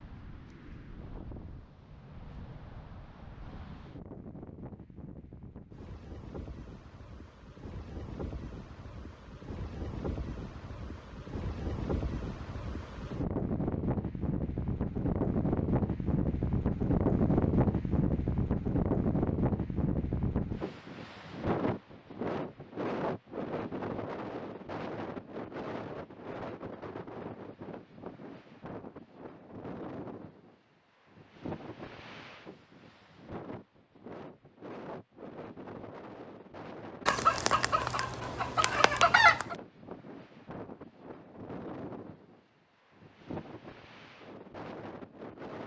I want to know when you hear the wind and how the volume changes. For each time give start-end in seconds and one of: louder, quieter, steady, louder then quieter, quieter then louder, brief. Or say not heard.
0.0-45.6 louder then quieter.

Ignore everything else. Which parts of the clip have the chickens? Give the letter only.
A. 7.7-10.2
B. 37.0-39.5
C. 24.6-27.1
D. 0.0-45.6
B.